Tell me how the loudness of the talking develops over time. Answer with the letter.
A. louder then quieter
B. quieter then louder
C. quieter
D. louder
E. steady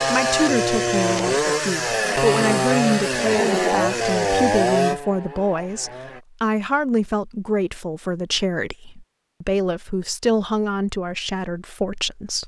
E.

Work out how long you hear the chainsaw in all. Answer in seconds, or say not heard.
6 s.